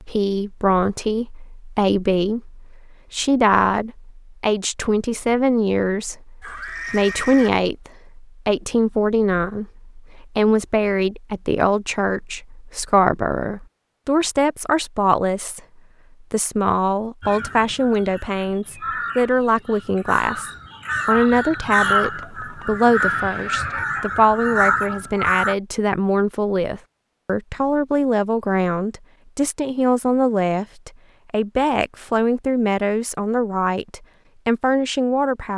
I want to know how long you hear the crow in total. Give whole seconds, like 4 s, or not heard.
8 s.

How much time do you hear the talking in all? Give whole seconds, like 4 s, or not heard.
35 s.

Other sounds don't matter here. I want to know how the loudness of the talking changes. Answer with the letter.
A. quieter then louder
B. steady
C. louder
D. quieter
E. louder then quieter
B.